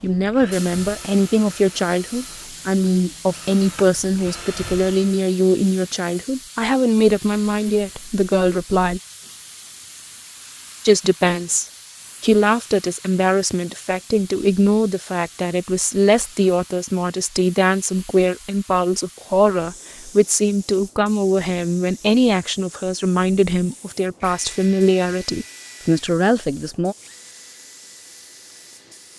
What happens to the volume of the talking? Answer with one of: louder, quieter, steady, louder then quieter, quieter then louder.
steady.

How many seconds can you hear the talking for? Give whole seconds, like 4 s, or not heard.
25 s.